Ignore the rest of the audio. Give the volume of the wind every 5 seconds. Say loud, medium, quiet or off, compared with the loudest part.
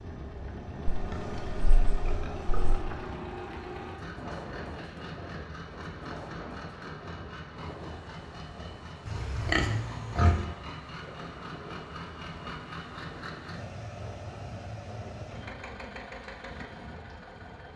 loud, loud, medium, medium.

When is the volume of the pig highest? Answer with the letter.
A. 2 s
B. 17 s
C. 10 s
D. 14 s
C.